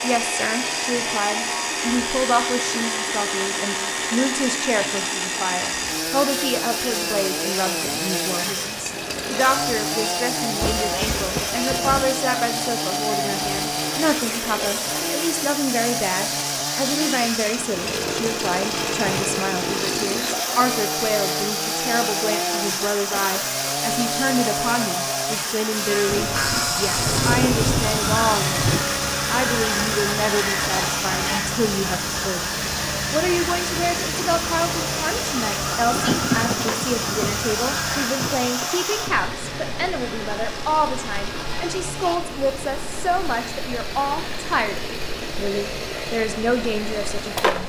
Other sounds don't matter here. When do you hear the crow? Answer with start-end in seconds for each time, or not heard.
27.9-38.1.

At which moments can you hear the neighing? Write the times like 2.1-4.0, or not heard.
not heard.